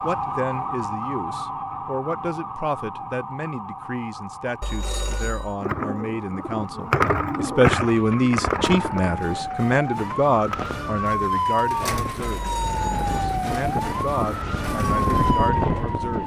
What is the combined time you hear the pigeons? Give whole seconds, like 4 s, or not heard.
10 s.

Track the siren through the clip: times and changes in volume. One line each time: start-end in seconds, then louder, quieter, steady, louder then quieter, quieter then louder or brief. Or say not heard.
0.0-16.2 quieter then louder.